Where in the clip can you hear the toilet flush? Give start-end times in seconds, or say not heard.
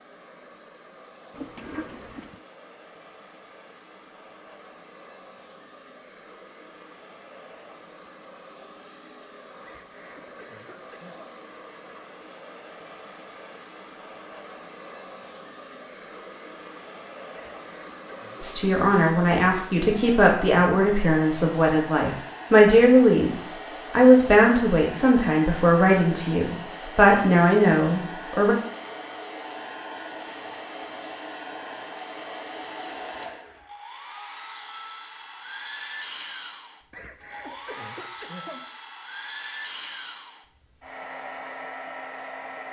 1.3-2.4.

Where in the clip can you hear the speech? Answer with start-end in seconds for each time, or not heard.
18.4-28.6.